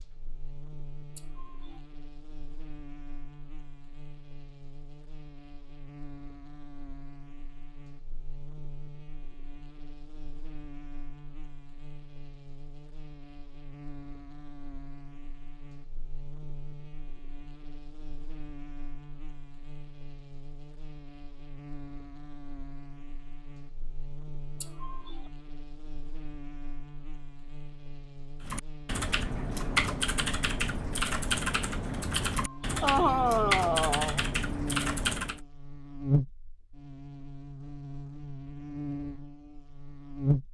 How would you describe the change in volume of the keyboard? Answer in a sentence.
The loudness of the keyboard stays about the same.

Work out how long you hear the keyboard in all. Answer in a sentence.
You can hear the keyboard for 7 seconds altogether.